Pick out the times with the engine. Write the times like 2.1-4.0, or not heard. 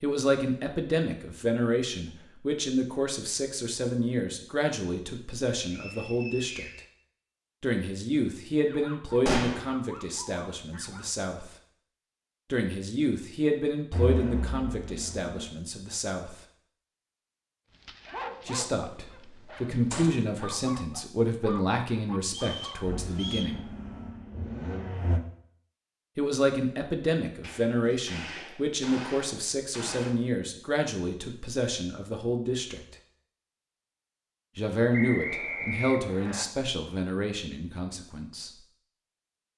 13.9-15.4, 22.9-25.2.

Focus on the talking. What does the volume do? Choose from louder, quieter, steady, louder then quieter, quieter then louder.
steady.